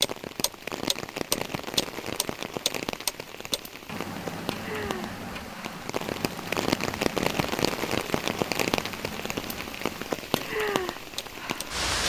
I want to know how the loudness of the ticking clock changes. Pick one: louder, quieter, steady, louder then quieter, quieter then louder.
quieter.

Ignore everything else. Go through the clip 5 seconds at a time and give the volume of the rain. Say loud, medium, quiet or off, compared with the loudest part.
medium, loud, loud.